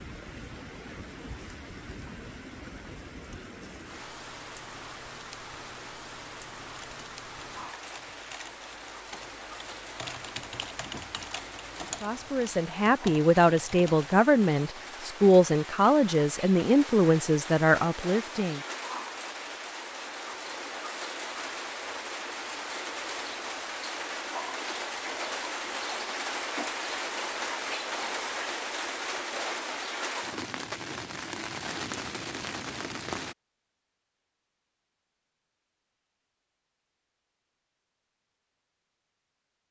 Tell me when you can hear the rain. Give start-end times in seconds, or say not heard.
0.0-33.4.